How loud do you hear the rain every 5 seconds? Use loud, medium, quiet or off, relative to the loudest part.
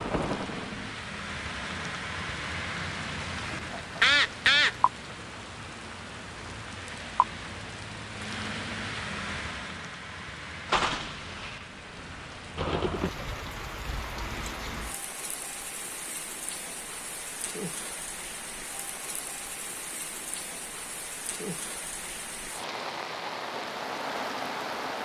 loud, loud, loud, medium, loud.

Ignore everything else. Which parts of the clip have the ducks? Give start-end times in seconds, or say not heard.
3.5-4.8.